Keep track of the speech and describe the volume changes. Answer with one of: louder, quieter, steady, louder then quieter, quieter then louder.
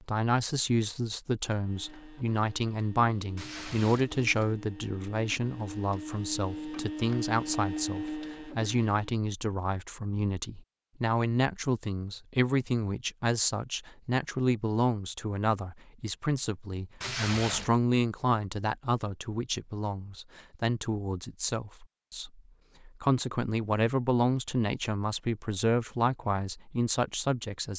steady.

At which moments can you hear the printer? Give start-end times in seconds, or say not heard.
1.6-9.1.